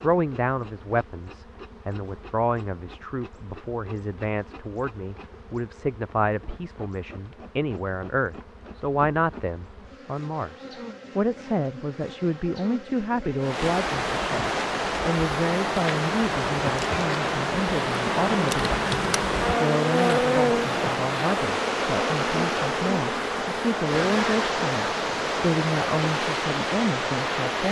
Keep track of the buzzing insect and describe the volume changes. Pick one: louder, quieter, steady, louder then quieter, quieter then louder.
louder.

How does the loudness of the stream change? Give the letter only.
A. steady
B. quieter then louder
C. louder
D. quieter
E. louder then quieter
A.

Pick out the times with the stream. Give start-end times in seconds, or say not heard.
13.3-27.6.